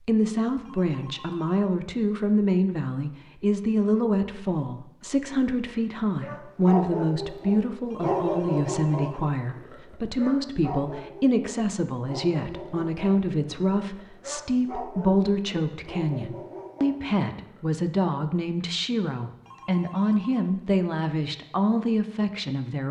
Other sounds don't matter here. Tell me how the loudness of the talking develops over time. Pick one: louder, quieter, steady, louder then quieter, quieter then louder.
steady.